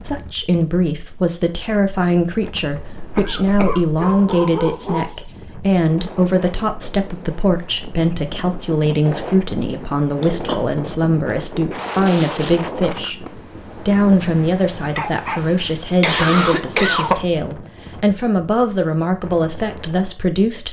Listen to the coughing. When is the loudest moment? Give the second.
17 s.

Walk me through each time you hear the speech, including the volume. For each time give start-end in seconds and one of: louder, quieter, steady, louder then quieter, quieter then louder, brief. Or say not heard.
0.1-20.6 steady.